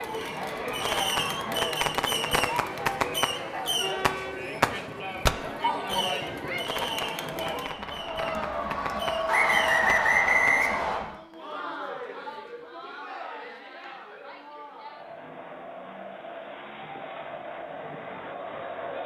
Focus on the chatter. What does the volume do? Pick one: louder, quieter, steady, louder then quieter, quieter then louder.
quieter.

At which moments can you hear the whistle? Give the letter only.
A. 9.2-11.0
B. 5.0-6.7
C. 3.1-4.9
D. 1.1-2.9
A.